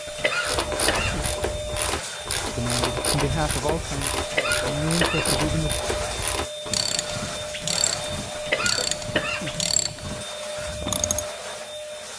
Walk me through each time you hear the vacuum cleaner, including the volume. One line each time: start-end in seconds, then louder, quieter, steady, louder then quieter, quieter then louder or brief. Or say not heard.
0.0-12.1 steady.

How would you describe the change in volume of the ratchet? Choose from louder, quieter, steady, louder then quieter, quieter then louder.
steady.